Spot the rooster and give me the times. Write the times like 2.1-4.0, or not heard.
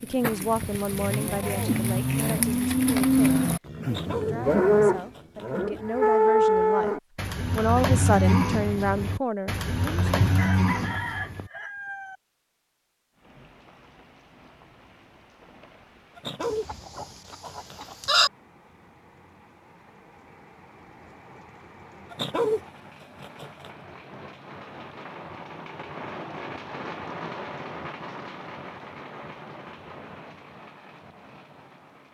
10.2-12.2, 16.4-18.3.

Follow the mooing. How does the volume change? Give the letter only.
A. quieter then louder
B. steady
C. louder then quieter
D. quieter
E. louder
C.